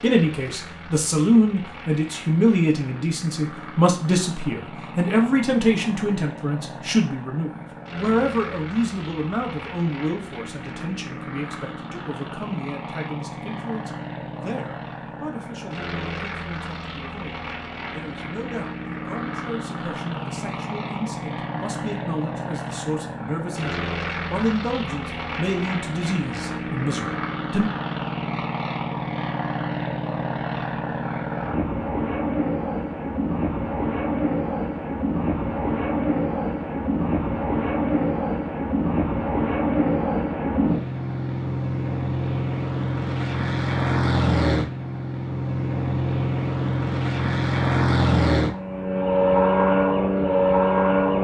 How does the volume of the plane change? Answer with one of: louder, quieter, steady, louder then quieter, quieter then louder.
louder.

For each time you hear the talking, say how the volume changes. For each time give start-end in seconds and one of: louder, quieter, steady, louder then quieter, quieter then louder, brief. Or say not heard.
0.0-27.6 quieter then louder.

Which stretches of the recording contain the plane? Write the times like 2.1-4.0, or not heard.
0.0-51.1.